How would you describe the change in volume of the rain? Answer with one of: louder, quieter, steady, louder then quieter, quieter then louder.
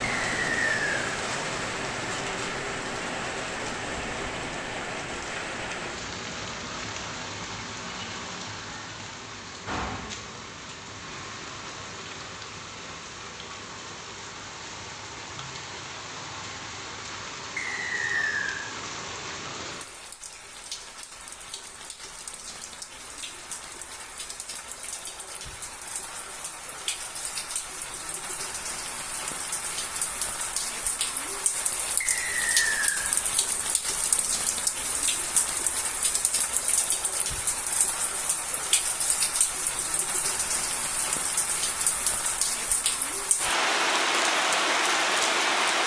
quieter then louder.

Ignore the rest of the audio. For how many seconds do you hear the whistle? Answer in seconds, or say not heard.
3 s.